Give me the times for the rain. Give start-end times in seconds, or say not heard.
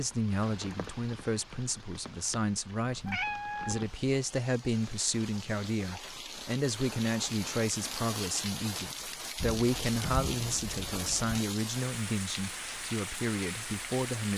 0.0-14.3.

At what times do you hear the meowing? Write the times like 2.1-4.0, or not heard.
2.9-4.0, 9.3-11.4.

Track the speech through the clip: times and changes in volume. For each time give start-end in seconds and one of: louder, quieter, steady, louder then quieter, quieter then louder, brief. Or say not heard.
0.0-14.3 steady.